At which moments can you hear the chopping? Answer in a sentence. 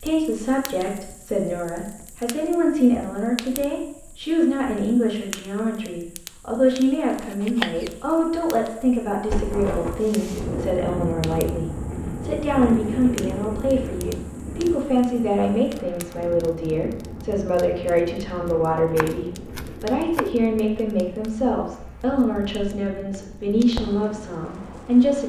The chopping can be heard from 6.7 to 8.1 s and from 18.8 to 20.3 s.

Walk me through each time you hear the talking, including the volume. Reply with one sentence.
The talking can be heard from 0.0 to 25.2 s, at a steady volume.